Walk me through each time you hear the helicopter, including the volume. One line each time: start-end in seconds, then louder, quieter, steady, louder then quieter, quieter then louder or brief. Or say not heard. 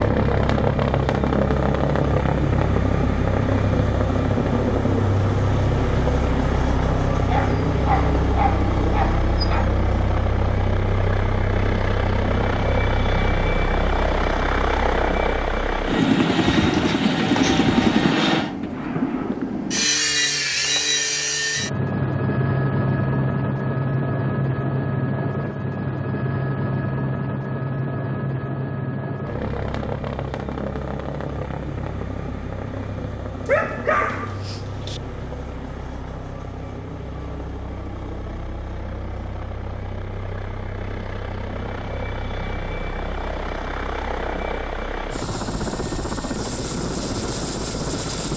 0.0-48.3 quieter.